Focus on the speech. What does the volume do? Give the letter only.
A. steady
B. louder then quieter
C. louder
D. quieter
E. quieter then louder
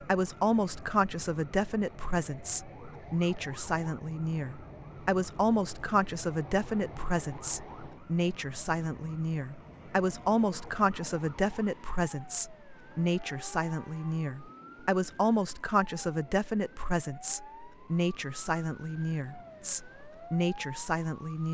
A.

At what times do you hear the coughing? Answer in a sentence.
You can't hear the coughing here.